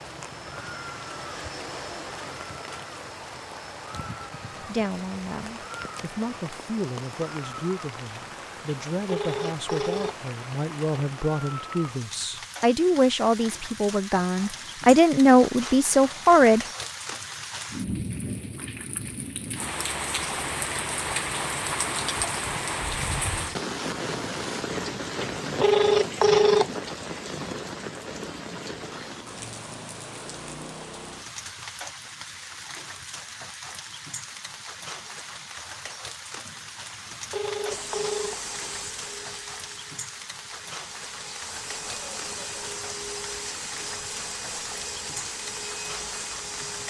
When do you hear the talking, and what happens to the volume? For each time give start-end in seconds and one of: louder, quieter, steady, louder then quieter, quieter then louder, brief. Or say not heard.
4.6-16.6 louder.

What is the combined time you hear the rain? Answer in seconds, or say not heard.
47 s.